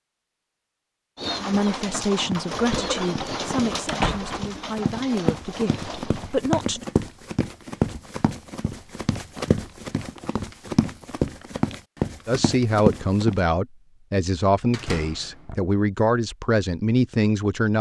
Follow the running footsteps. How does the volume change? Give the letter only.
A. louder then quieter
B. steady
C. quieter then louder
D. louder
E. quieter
D.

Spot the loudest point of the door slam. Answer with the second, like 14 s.
4 s.